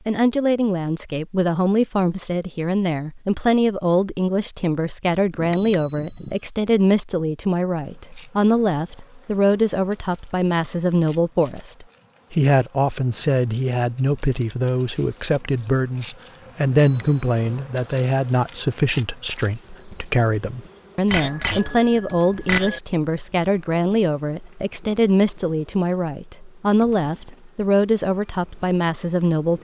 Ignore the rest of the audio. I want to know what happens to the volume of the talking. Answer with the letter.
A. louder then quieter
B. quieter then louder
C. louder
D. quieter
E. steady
E.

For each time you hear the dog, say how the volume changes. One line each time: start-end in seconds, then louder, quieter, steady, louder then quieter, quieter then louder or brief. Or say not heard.
not heard.